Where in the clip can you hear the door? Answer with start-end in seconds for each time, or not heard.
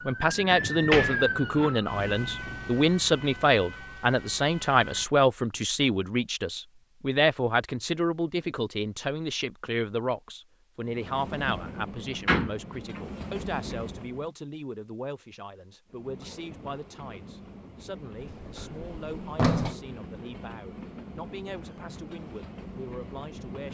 0.5-1.8, 12.2-13.0, 18.2-19.8.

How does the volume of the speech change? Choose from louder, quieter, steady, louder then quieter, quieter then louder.
quieter.